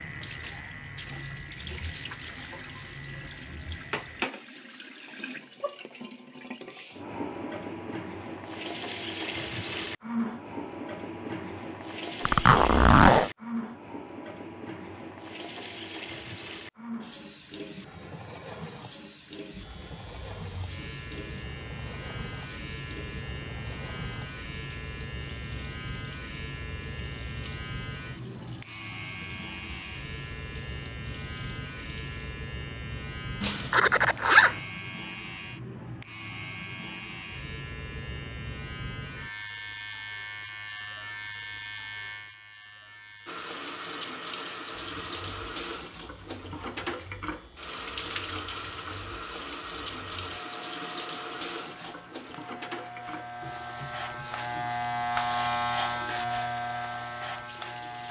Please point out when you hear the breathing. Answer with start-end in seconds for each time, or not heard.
not heard.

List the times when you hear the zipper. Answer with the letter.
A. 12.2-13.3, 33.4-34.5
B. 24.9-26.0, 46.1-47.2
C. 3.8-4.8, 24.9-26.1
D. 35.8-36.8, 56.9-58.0
A.